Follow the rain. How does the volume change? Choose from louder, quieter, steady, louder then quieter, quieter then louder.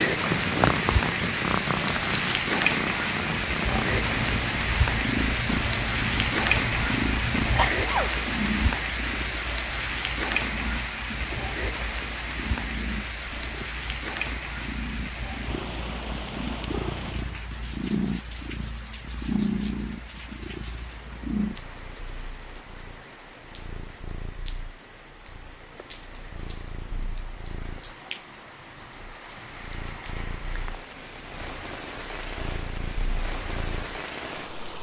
quieter then louder.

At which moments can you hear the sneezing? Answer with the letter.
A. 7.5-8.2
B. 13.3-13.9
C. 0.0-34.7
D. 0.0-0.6
A.